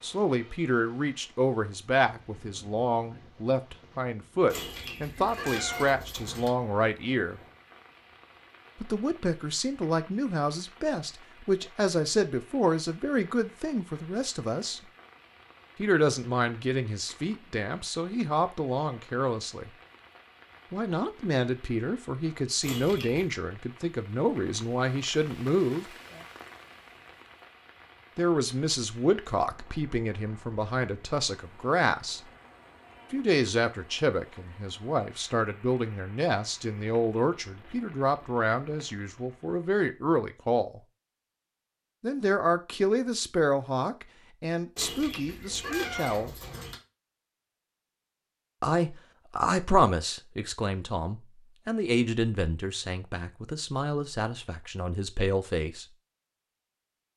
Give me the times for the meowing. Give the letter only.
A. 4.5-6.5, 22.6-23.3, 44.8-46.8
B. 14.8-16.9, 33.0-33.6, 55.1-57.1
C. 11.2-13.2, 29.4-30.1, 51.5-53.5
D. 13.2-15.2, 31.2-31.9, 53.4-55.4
A.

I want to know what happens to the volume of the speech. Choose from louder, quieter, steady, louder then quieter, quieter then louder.
steady.